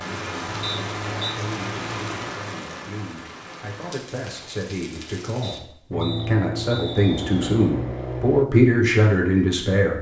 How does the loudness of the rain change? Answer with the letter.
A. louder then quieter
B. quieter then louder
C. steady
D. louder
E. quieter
E.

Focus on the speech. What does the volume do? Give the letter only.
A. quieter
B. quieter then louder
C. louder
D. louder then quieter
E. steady
C.